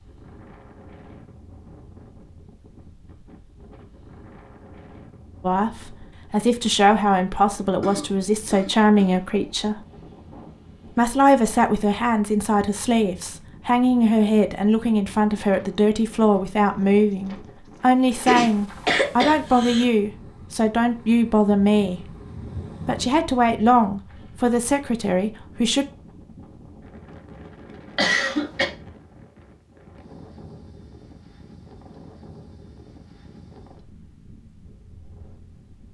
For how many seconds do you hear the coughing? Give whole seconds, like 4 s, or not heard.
4 s.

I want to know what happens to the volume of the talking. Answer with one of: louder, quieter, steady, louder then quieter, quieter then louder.
steady.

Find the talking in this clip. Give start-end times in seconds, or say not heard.
5.4-9.8, 10.9-22.1, 22.9-25.9.